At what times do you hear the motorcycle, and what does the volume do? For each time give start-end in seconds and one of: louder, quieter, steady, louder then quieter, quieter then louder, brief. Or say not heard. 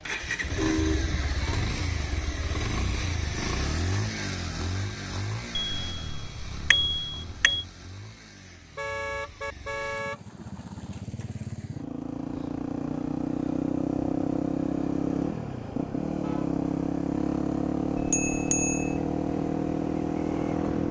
0.0-20.8 quieter then louder.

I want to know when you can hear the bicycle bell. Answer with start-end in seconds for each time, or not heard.
5.5-7.7, 17.9-19.0.